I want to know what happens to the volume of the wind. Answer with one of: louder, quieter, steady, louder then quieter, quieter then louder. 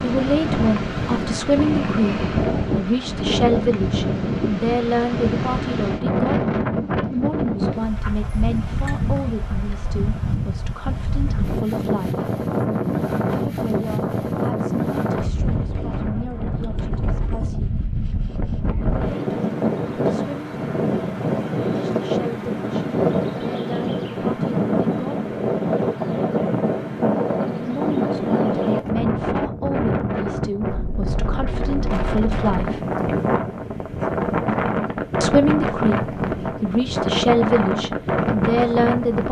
steady.